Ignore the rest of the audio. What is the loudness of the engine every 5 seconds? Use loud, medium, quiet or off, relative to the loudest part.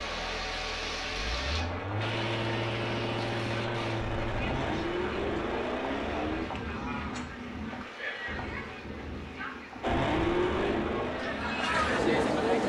medium, loud, loud.